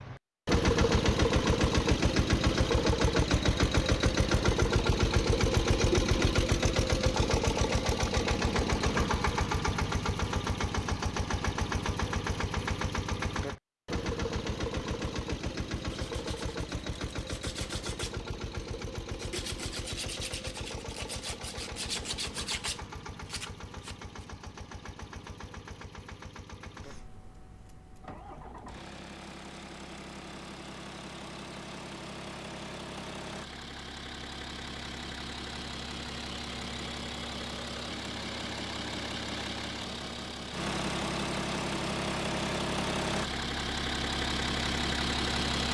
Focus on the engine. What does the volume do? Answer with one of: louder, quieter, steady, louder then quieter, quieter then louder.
quieter then louder.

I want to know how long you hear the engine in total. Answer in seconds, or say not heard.
46 s.